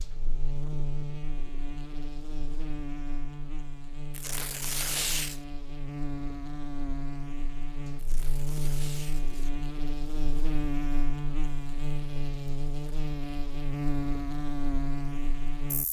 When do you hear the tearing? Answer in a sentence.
The tearing can be heard from 4.1 to 5.4 s and from 8.0 to 9.6 s.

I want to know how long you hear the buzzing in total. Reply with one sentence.
You can hear the buzzing for 16 seconds altogether.